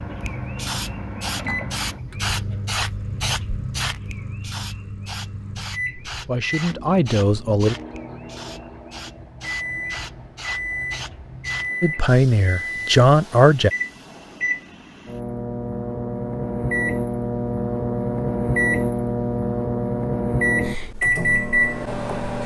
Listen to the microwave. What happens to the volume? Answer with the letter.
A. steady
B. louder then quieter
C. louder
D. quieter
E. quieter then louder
C.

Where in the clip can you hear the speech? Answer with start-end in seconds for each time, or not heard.
6.0-7.8, 11.8-13.7.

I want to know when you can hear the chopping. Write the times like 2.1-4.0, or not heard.
not heard.